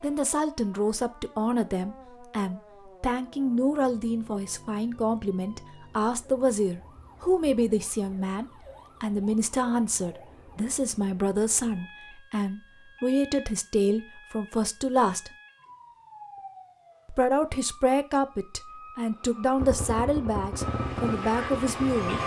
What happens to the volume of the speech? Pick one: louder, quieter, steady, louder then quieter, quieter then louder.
steady.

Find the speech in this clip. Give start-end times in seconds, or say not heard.
0.0-15.3, 17.1-22.2.